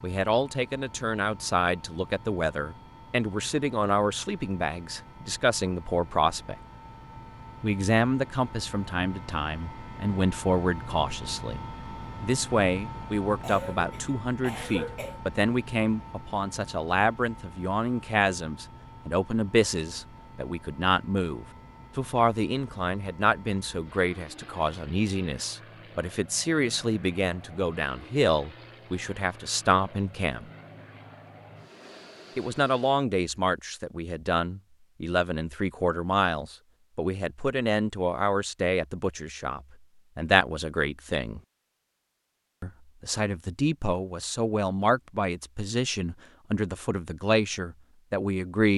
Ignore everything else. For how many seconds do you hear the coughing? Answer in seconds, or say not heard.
2 s.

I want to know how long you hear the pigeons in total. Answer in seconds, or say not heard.
not heard.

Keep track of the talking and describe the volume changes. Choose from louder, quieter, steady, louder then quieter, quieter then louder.
steady.